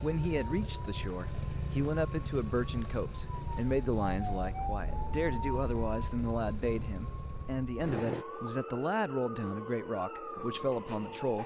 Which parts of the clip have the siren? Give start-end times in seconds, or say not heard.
0.0-11.4.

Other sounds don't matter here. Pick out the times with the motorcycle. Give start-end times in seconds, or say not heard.
0.0-8.2.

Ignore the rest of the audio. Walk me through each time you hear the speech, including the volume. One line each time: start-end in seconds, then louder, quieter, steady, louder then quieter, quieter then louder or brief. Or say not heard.
0.0-11.4 steady.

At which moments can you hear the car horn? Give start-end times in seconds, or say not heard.
not heard.